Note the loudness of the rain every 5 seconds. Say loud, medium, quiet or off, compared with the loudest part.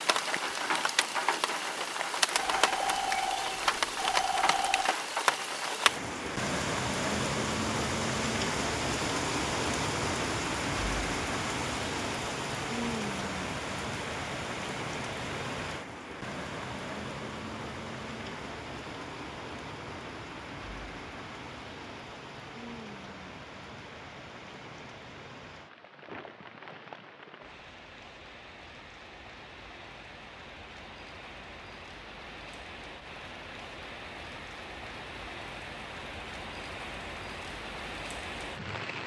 loud, loud, loud, medium, quiet, quiet, quiet, medium.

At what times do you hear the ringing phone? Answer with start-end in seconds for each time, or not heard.
2.4-5.0.